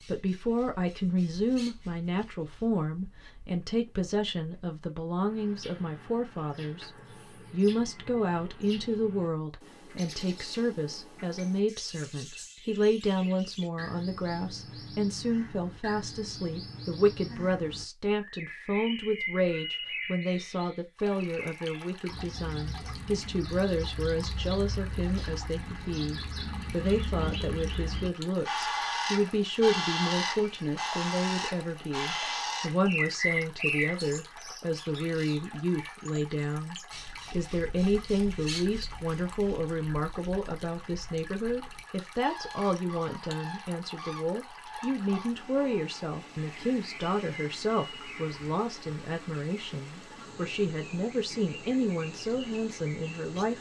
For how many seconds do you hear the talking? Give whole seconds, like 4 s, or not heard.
53 s.